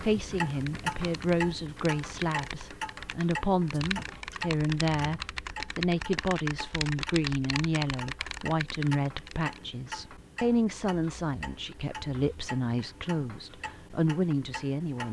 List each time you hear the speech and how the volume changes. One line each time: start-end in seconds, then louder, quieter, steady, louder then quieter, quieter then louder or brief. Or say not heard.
0.0-15.0 steady.